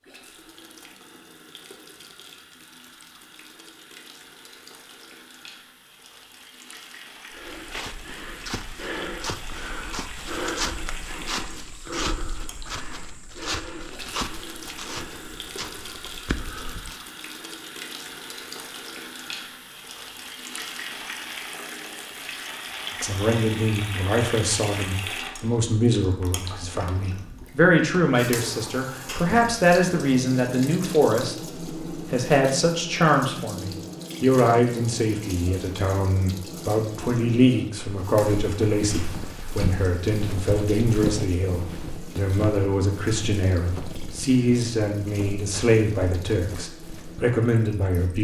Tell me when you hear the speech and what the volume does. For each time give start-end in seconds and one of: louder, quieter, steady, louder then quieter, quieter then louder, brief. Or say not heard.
23.0-48.2 steady.